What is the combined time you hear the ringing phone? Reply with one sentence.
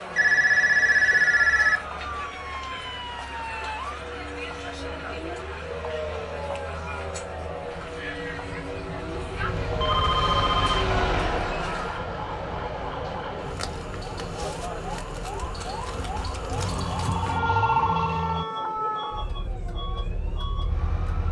The ringing phone can be heard for 5 seconds in total.